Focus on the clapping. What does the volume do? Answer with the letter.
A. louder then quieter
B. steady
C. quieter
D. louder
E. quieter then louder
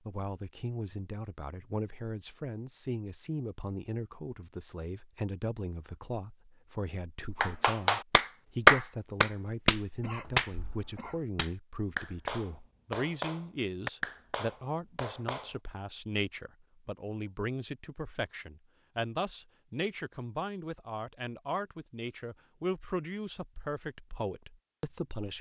C.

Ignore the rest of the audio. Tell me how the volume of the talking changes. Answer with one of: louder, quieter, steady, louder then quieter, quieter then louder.
steady.